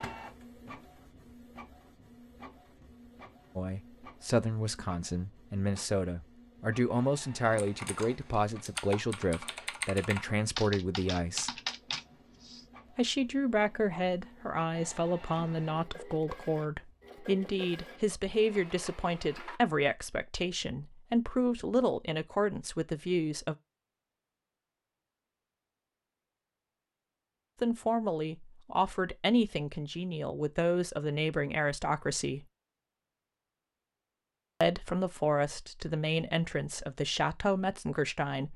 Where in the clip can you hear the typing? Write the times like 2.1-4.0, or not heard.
7.5-12.7.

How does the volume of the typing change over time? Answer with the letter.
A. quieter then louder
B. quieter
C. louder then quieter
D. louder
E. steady
D.